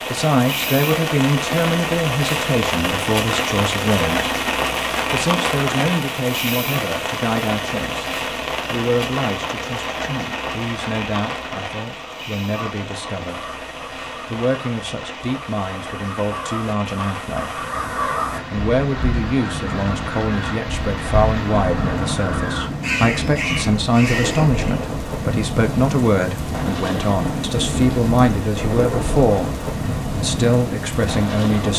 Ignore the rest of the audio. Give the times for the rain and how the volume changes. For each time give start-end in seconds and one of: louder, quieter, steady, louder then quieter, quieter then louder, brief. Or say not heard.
0.0-31.7 quieter then louder.